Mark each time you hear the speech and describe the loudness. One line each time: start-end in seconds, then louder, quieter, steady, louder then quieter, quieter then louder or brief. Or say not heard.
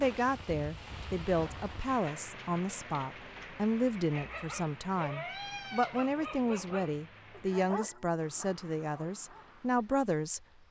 0.0-10.4 steady.